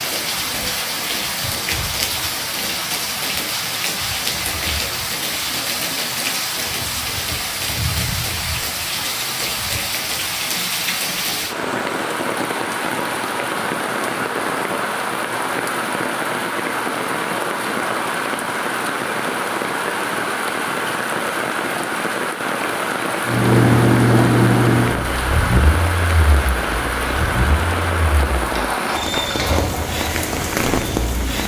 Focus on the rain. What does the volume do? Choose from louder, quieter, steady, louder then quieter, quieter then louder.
steady.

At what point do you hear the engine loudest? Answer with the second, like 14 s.
24 s.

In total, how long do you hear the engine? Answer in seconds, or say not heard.
8 s.